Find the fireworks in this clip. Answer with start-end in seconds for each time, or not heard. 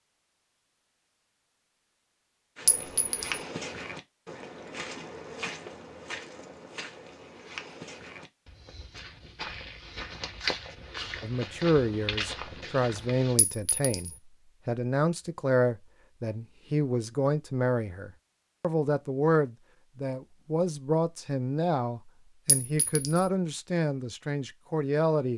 not heard.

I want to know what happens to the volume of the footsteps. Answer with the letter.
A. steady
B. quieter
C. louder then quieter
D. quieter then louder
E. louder
D.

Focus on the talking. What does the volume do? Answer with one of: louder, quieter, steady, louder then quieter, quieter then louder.
steady.